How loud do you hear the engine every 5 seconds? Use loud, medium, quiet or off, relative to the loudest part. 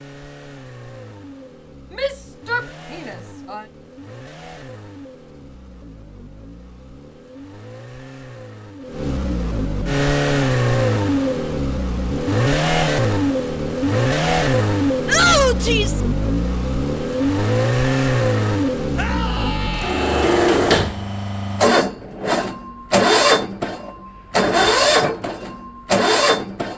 quiet, quiet, loud, loud, loud, loud.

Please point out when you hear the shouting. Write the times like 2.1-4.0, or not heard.
1.9-3.6, 15.1-16.0, 18.9-20.5.